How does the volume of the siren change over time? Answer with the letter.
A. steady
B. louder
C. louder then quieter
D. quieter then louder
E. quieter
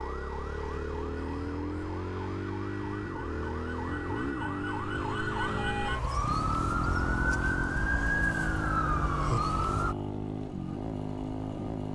B.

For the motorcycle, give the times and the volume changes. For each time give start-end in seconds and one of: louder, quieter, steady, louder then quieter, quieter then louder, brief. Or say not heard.
0.0-11.9 steady.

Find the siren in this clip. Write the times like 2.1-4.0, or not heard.
0.0-9.9.